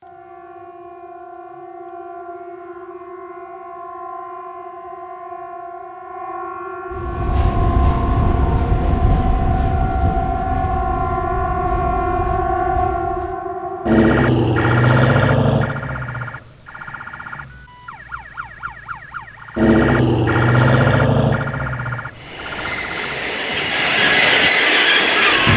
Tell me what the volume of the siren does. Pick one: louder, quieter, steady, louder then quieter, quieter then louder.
louder.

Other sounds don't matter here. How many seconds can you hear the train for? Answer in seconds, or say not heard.
10 s.